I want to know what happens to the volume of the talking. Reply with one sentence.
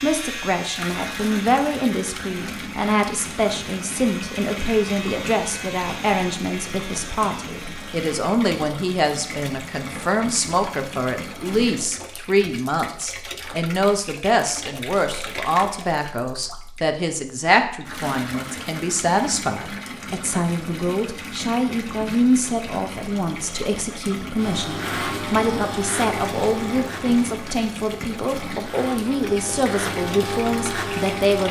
The volume of the talking stays about the same.